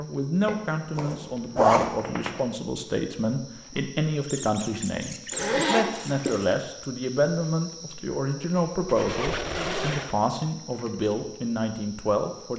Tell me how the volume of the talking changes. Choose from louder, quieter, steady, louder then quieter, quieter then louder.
steady.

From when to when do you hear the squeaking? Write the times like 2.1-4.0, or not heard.
1.9-2.5, 4.2-6.5, 8.8-10.2.